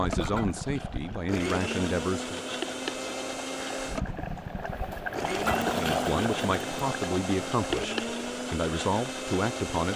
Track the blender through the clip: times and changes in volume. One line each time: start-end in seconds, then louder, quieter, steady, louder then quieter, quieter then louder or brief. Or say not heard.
0.0-9.9 steady.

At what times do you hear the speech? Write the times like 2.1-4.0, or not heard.
0.0-2.4, 5.8-9.9.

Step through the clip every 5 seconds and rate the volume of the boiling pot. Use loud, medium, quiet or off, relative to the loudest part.
medium, loud.